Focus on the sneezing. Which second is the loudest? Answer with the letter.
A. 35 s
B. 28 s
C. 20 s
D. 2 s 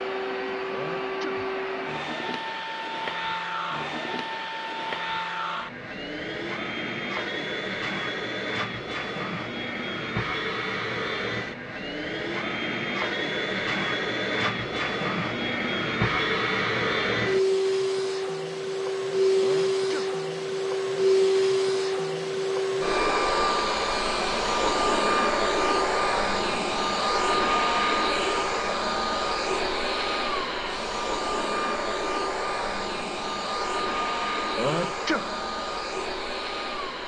A.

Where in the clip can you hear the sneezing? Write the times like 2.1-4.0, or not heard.
0.7-1.4, 19.4-20.1, 34.5-35.4.